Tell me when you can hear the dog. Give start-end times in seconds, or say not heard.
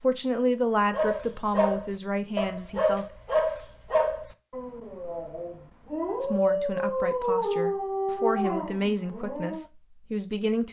0.9-9.7.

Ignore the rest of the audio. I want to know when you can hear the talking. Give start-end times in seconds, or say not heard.
0.0-3.0, 6.2-10.6.